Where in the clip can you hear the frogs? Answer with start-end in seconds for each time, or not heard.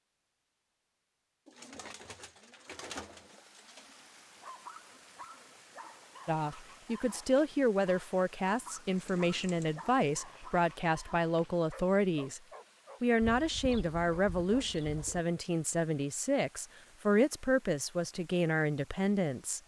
not heard.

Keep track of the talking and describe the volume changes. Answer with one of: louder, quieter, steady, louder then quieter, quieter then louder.
steady.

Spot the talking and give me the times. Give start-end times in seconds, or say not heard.
6.2-12.4, 13.0-19.6.